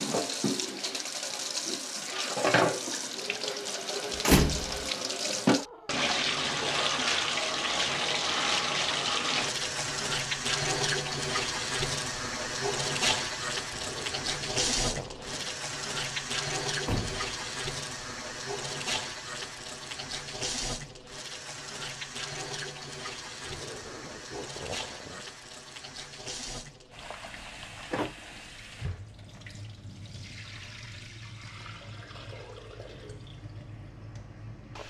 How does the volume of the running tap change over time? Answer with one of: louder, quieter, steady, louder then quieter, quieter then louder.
quieter.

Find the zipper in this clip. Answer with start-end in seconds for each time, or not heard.
13.8-15.5, 23.4-25.2.